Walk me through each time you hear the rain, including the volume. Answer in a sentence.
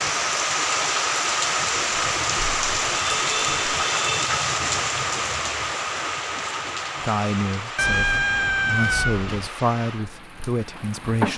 You can hear the rain from 0.0 to 11.3 s, getting quieter.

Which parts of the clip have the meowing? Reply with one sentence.
The meowing can be heard from 1.7 to 3.9 s and from 7.8 to 9.5 s.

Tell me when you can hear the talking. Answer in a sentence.
You can hear the talking from 7.0 to 11.3 s.